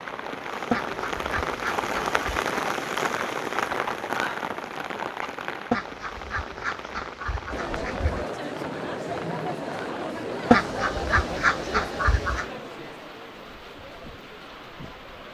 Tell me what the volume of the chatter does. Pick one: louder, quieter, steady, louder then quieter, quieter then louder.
quieter.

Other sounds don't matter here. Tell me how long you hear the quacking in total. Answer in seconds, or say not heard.
6 s.